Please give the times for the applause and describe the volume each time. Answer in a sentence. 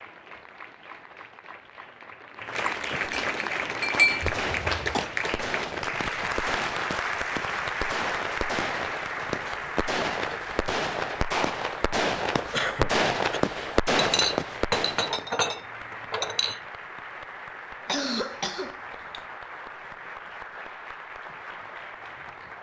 The applause can be heard from 0.0 to 22.5 s, getting quieter.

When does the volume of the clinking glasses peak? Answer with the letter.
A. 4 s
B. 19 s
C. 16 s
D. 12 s
A.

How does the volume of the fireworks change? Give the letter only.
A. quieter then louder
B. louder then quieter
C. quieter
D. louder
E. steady
D.